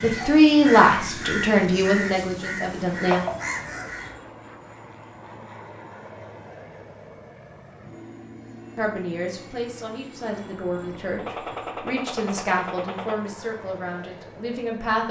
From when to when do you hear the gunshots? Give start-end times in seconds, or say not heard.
11.2-13.2.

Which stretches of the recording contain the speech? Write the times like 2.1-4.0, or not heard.
0.0-3.2, 8.8-15.0.